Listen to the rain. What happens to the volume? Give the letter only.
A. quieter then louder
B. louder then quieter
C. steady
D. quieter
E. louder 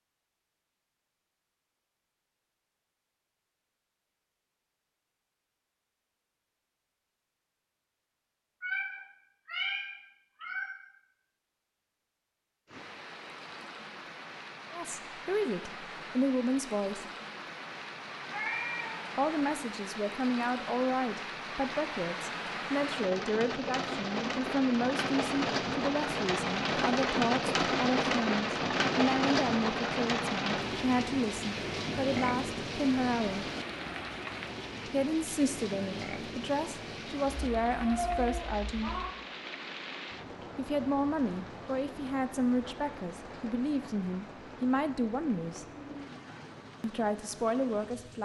B.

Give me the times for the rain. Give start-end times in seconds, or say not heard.
12.7-48.2.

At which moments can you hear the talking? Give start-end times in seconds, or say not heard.
14.7-17.1, 19.1-33.5, 34.9-39.0, 40.5-45.6, 46.8-48.2.